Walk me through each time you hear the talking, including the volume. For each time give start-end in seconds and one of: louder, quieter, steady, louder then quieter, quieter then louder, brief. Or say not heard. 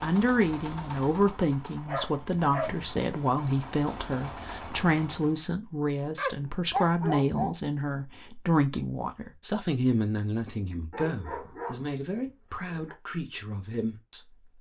0.0-14.4 quieter.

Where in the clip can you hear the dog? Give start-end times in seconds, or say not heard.
1.9-3.0, 6.2-7.5, 10.9-12.9.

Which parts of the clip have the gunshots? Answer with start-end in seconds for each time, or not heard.
not heard.